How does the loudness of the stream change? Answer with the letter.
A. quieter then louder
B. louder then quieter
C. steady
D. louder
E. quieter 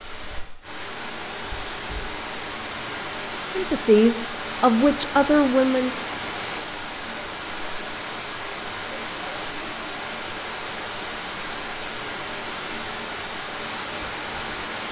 C.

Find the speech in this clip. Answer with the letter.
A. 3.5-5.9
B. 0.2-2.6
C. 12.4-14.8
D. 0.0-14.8
A.